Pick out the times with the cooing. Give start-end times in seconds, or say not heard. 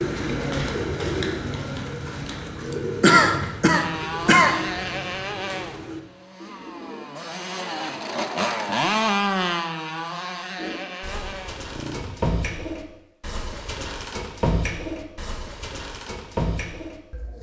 0.0-7.1, 10.6-17.3.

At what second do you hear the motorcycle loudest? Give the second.
9 s.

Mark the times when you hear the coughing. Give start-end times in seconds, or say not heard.
3.0-4.6.